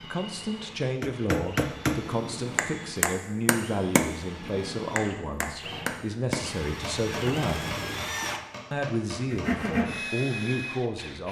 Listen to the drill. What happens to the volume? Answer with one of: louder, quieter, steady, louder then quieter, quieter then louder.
louder.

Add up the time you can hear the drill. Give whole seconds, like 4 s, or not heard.
11 s.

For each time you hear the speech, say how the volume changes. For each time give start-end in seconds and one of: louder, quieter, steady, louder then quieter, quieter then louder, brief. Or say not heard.
0.0-7.7 steady
8.7-11.2 brief.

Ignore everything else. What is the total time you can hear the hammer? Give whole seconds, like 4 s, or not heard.
9 s.